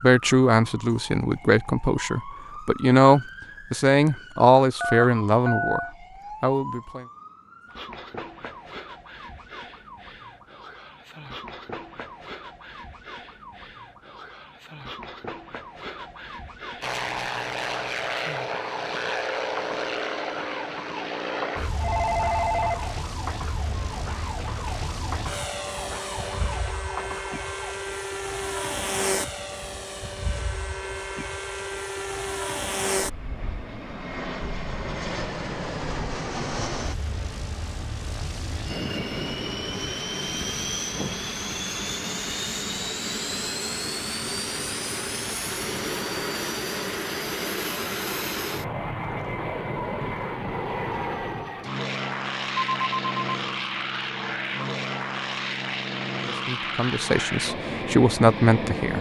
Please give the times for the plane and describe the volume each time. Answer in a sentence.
You can hear the plane from 16.8 to 58.9 s, at a steady volume.